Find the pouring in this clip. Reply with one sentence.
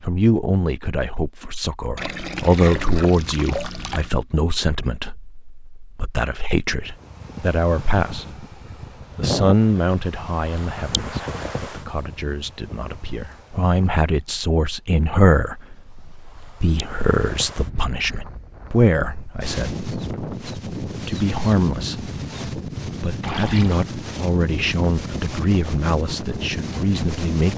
You can hear the pouring from 1.9 to 4.1 s and from 23.2 to 23.9 s.